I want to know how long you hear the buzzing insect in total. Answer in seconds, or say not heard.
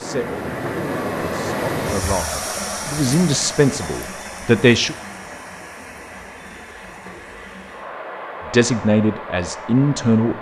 not heard.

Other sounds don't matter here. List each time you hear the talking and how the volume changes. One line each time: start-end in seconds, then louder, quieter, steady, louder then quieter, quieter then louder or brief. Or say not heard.
0.0-5.0 louder
8.5-10.3 brief.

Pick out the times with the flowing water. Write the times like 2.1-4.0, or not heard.
0.0-10.3.